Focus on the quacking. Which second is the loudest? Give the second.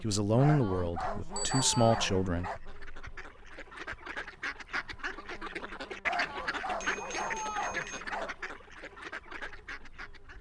6 s.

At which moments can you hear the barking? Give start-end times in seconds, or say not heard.
0.3-2.6, 6.0-8.3.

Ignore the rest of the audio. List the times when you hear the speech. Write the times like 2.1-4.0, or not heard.
0.0-2.5.